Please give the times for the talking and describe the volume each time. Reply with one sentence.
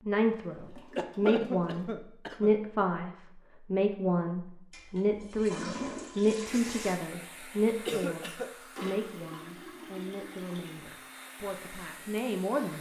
The talking can be heard from 0.1 to 12.7 s, getting quieter.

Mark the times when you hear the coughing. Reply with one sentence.
The coughing can be heard from 0.9 to 2.5 s and from 7.8 to 8.5 s.